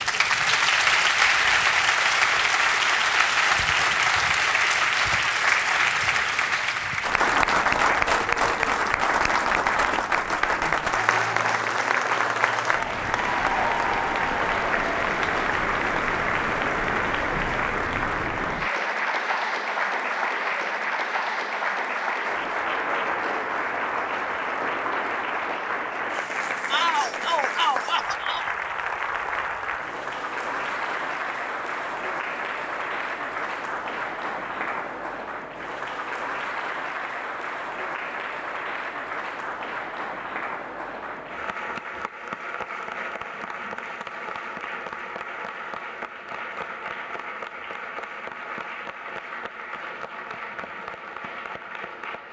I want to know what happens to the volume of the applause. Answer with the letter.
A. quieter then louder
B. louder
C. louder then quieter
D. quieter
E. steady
D.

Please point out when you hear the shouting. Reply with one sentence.
You can hear the shouting from 26.7 to 28.5 s.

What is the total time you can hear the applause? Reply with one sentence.
The applause can be heard for 52 seconds in total.